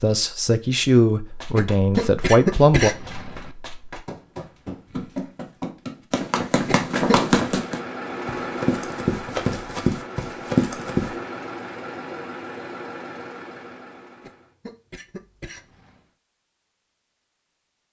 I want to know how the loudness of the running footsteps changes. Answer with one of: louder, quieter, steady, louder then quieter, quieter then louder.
louder.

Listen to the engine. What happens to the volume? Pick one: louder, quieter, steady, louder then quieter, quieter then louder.
quieter.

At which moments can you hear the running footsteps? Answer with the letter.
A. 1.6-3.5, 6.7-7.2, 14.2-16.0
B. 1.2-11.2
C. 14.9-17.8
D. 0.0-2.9
B.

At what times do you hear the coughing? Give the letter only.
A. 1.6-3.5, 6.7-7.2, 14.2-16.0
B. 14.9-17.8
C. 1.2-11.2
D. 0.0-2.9
A.